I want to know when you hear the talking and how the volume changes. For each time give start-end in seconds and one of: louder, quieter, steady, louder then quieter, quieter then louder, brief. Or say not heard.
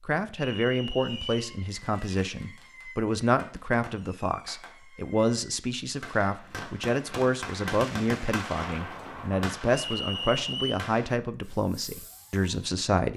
0.0-13.1 steady.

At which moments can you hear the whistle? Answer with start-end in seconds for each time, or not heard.
0.3-1.4, 9.8-10.8.